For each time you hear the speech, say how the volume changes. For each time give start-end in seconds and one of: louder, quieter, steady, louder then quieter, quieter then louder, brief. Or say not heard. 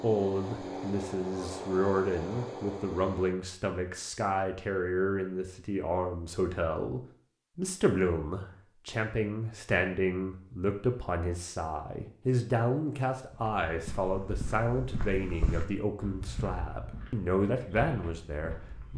0.0-18.9 steady.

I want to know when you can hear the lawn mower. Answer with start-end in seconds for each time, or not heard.
0.0-3.4.